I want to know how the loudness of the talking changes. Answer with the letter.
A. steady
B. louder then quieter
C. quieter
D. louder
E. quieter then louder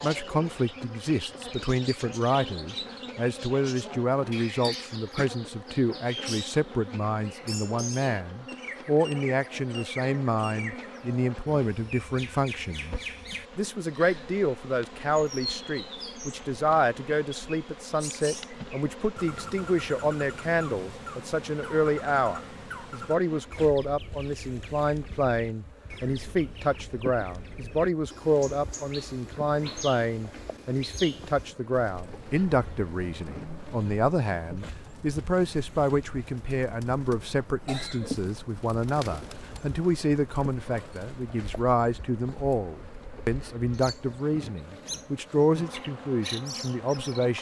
A.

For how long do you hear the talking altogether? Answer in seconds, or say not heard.
47 s.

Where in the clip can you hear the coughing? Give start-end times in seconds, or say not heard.
4.7-5.3, 37.6-38.3.